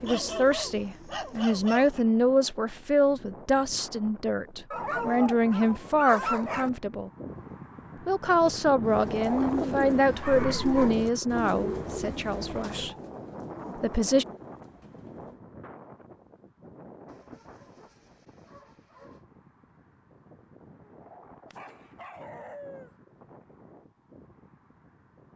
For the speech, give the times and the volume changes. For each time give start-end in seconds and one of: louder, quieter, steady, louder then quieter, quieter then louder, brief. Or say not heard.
0.0-7.1 steady
8.1-12.9 quieter
13.8-14.2 brief.